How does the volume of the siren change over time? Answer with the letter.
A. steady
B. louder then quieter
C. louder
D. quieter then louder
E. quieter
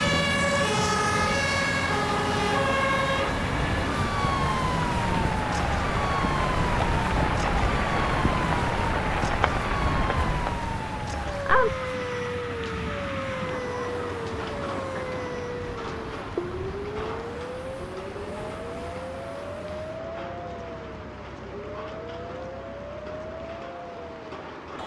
E.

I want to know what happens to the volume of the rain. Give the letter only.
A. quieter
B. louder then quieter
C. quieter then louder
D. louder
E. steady
A.